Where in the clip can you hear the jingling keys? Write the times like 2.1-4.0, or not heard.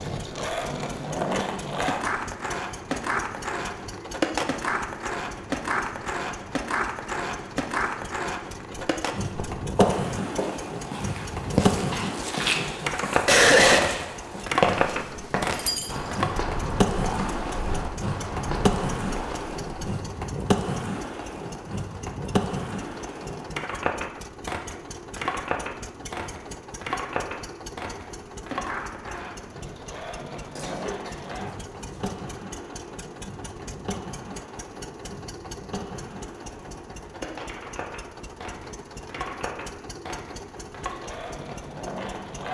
15.5-16.2.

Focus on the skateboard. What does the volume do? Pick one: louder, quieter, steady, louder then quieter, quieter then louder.
quieter.